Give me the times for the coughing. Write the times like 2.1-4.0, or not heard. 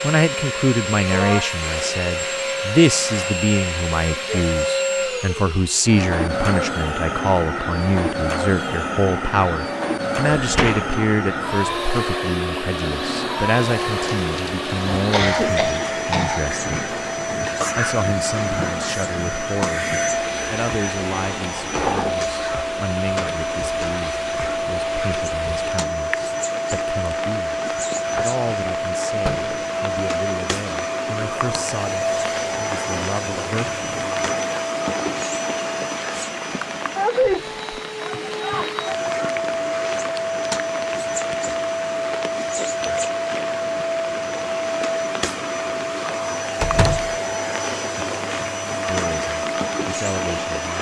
14.9-16.4.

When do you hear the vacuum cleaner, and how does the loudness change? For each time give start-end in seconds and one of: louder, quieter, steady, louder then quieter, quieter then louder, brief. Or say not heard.
0.0-50.7 steady.